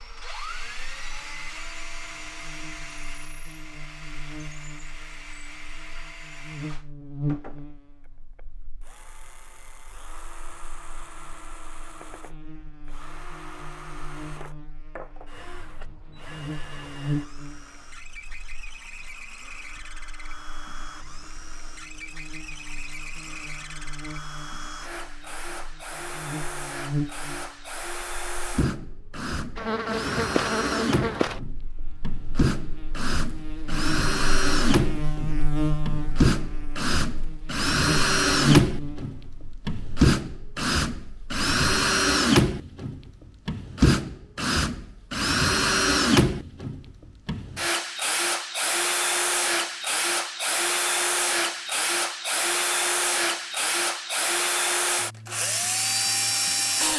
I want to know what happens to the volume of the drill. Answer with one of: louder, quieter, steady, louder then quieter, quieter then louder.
louder.